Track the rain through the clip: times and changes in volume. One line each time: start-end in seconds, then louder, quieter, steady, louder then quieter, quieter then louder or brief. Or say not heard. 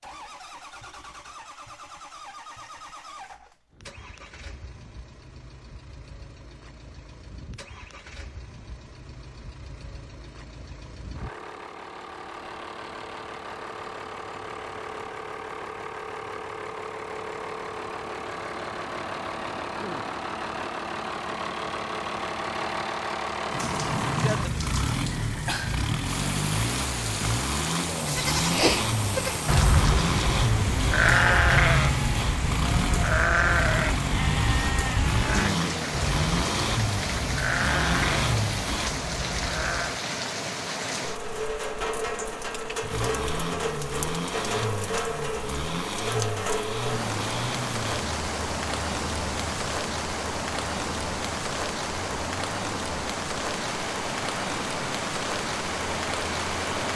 23.4-56.9 steady.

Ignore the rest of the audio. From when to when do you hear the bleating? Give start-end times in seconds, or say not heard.
28.1-40.0.